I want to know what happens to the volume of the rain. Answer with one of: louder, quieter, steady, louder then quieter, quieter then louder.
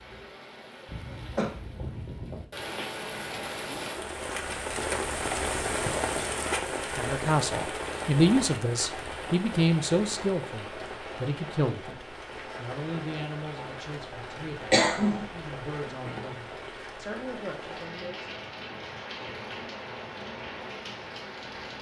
louder then quieter.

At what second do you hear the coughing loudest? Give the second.
15 s.